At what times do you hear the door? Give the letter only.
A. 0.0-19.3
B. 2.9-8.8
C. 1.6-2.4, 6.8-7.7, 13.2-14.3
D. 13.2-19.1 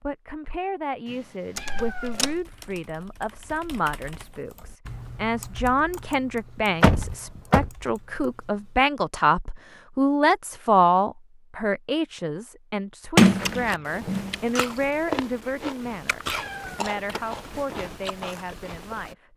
C.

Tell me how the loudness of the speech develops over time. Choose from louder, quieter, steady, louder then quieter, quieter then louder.
louder then quieter.